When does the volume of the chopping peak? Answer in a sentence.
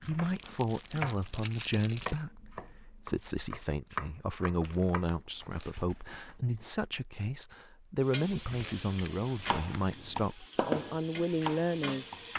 The volume of the chopping peaks at 11 seconds.